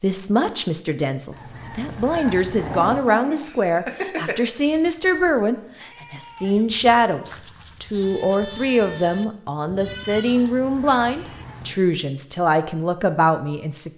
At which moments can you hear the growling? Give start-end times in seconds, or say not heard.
2.5-4.5.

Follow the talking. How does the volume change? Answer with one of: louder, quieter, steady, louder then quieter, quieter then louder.
steady.